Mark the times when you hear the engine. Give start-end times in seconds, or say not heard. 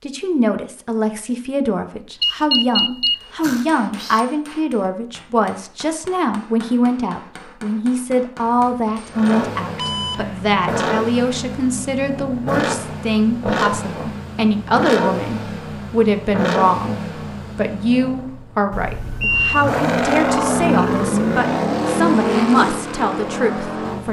9.1-24.0.